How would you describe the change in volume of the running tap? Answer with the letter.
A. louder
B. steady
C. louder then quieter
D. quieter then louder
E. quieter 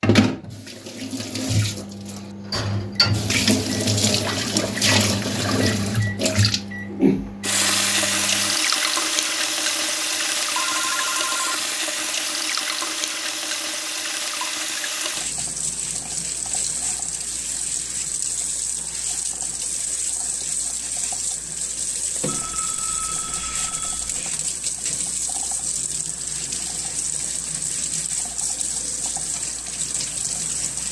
E.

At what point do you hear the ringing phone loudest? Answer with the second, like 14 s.
11 s.